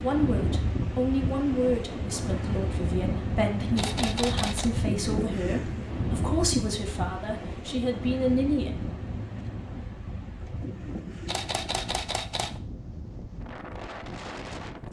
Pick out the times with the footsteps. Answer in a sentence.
The footsteps can't be heard in this clip.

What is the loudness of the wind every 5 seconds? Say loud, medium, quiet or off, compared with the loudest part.
loud, loud, medium.